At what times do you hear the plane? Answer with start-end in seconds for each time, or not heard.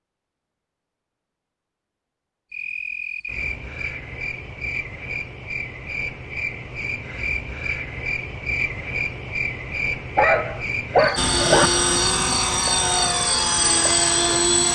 11.2-14.6.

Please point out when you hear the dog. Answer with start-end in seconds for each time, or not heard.
10.2-11.7.